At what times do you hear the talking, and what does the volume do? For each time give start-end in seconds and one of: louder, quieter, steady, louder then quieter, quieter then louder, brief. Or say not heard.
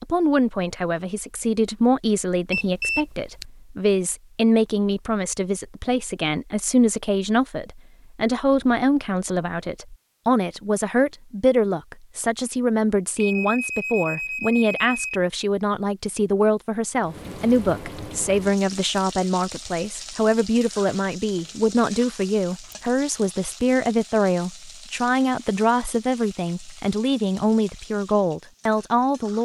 0.0-29.4 steady.